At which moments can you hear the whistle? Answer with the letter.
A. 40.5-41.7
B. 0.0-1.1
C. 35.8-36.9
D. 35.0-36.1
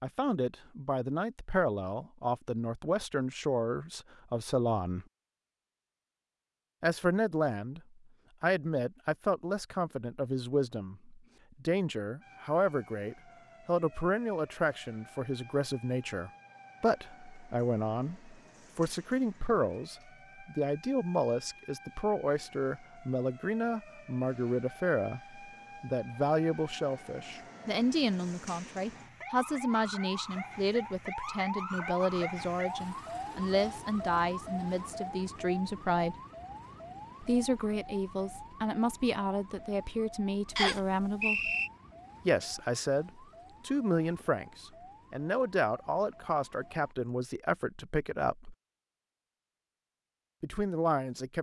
A.